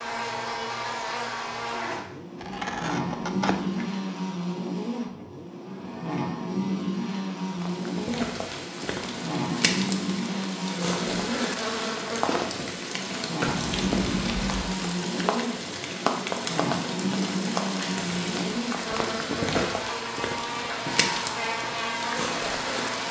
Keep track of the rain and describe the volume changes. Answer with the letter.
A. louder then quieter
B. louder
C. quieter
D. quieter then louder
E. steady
E.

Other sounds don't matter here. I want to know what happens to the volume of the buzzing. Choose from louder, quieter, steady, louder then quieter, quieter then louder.
steady.